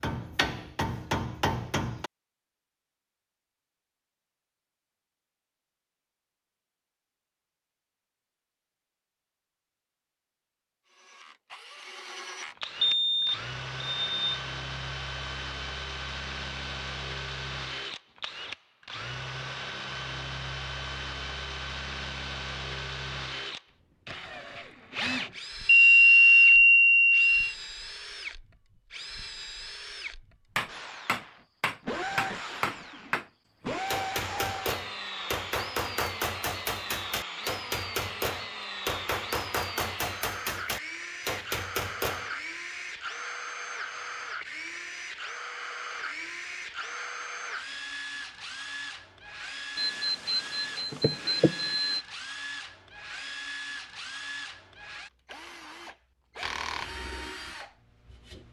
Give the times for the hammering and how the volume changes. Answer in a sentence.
You can hear the hammering briefly from 0.0 to 2.1 s; and from 30.6 to 42.3 s, at a steady volume.